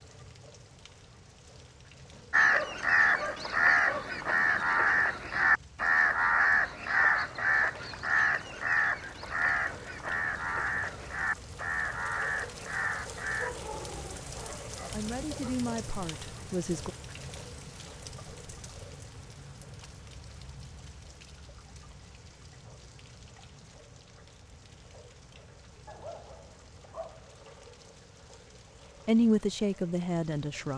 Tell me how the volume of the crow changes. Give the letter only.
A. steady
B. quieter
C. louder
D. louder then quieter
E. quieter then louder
B.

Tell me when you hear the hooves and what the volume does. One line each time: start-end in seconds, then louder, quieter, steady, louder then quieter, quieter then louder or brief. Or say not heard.
not heard.